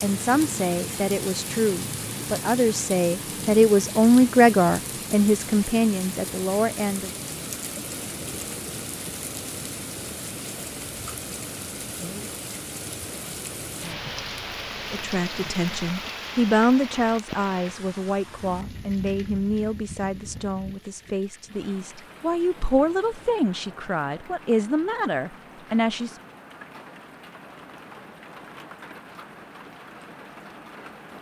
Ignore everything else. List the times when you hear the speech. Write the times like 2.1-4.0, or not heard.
0.0-7.1, 14.9-26.1.